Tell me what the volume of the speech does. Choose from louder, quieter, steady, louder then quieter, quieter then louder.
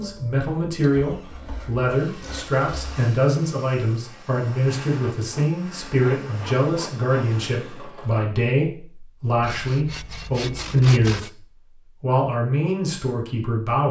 steady.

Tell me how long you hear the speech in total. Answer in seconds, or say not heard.
14 s.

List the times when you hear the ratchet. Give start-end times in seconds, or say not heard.
not heard.